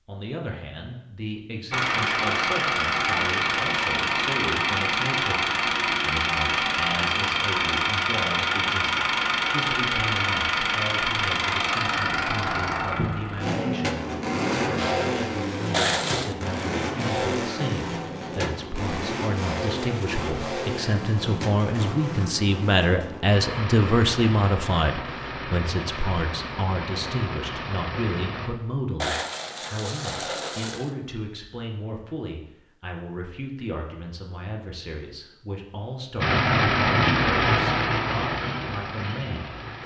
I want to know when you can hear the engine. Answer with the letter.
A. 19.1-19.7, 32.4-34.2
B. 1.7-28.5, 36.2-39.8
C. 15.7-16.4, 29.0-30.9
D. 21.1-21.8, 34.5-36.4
B.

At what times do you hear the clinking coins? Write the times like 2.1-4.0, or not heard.
15.7-16.4, 29.0-30.9.